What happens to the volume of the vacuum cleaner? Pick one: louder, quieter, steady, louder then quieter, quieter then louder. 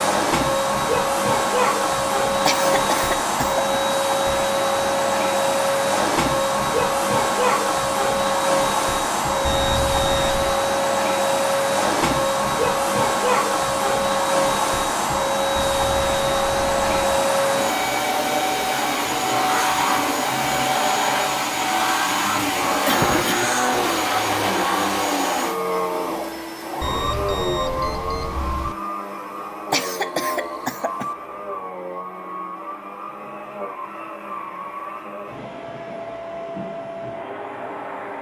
quieter.